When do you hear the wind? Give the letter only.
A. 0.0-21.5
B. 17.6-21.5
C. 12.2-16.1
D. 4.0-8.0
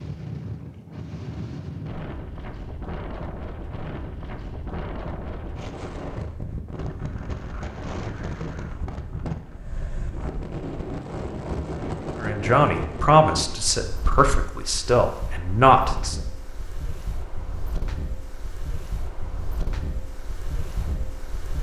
A.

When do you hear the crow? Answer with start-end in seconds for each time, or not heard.
not heard.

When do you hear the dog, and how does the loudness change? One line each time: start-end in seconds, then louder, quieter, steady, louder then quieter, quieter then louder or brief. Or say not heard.
not heard.